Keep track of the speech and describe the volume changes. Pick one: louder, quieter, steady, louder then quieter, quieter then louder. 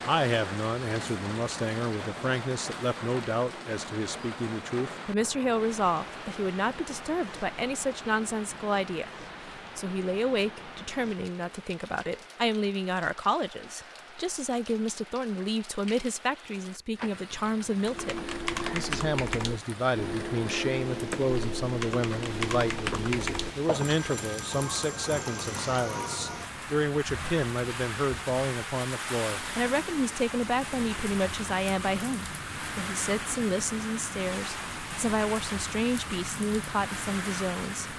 steady.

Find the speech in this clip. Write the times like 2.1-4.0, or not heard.
0.0-37.9.